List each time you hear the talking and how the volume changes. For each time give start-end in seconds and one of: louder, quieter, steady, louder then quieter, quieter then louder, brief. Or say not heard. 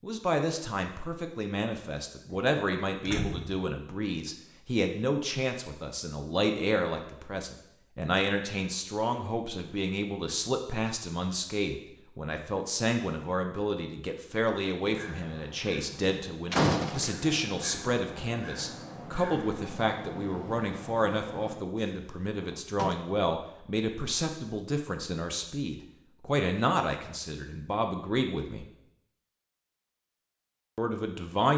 0.0-28.6 steady
30.8-31.5 brief.